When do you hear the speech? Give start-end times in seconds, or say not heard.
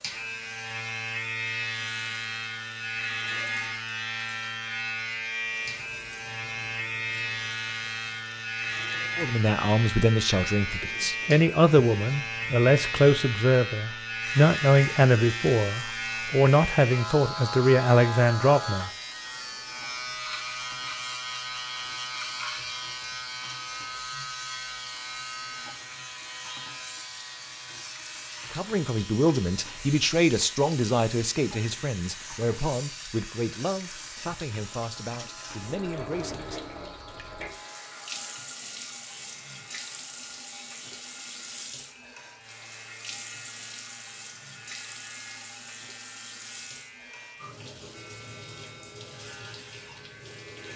9.2-18.9, 28.5-36.6.